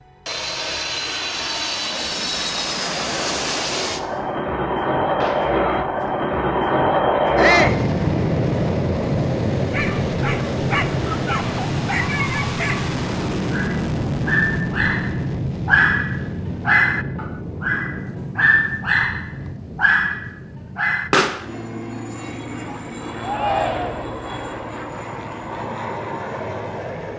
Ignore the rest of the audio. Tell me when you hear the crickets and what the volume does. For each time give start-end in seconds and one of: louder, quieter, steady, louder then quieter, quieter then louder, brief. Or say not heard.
not heard.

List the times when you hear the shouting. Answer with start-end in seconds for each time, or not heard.
7.3-7.8, 23.2-24.1.